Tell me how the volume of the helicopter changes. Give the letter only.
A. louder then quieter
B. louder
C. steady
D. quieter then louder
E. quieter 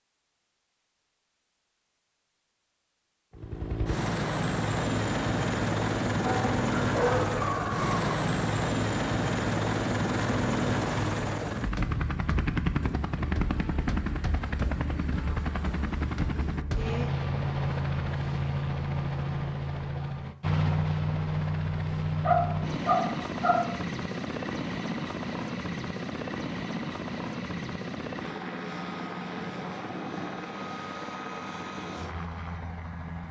E.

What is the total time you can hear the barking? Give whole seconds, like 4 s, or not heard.
3 s.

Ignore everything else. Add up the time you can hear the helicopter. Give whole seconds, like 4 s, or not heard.
30 s.